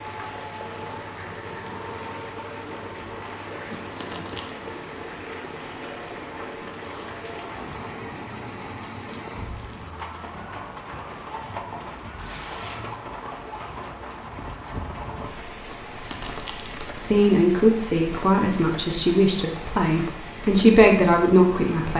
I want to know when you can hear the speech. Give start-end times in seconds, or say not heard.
17.0-21.9.